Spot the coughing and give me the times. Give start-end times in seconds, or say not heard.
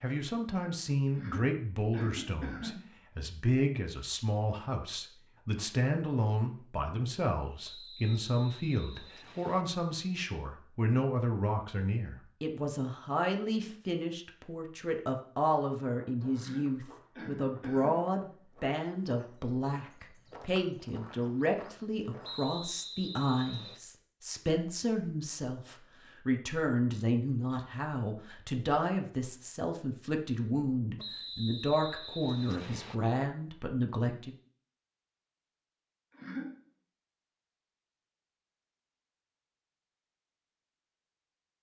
1.1-2.9, 16.3-18.1, 36.1-36.5.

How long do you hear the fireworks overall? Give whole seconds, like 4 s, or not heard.
not heard.